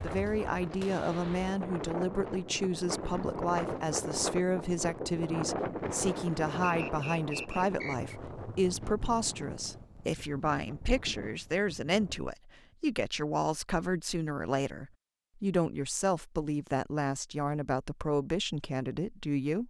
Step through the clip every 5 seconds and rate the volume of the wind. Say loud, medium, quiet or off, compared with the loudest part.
loud, loud, medium, off.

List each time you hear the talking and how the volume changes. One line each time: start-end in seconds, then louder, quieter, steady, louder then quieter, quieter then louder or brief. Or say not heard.
0.0-19.6 steady.